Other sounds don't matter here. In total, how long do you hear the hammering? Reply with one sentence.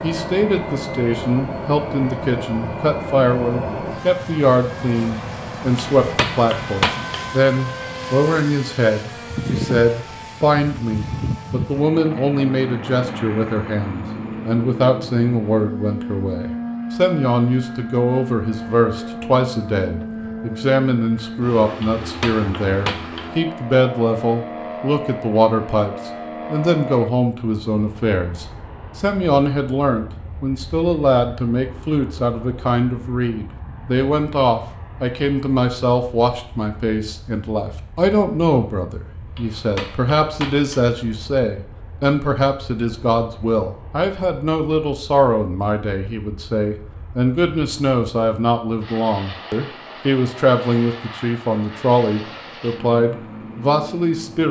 You can hear the hammering for 4 seconds altogether.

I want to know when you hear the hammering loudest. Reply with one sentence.
The loudest moment of the hammering is at 7 seconds.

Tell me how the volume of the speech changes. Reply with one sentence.
The loudness of the speech stays about the same.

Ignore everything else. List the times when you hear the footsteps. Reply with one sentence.
You can't hear the footsteps here.